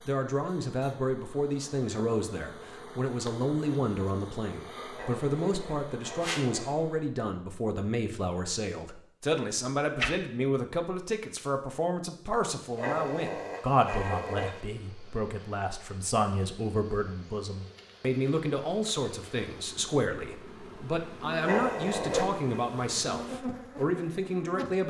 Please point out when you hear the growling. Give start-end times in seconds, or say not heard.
4.9-6.8, 12.8-14.6, 21.4-22.6.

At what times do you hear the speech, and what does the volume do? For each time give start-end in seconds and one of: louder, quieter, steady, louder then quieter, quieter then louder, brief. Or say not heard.
0.1-24.8 steady.